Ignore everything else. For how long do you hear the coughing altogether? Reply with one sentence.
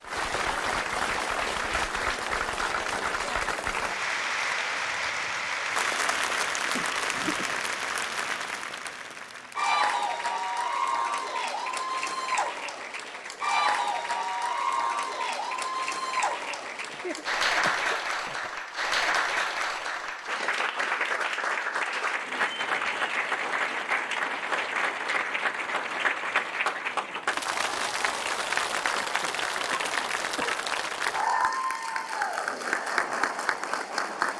The coughing can be heard for 4 seconds in total.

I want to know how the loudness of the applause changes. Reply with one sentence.
The volume of the applause stays about the same.